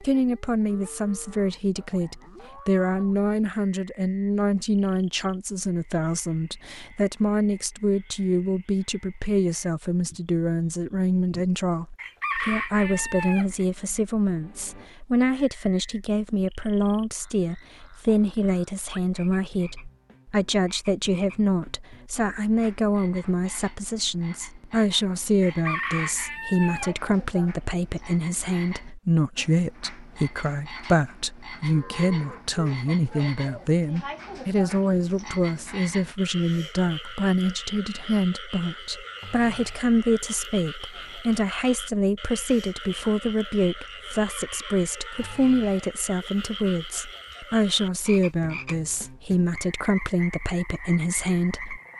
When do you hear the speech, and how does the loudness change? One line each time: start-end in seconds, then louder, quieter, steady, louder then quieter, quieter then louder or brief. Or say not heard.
0.0-51.8 steady.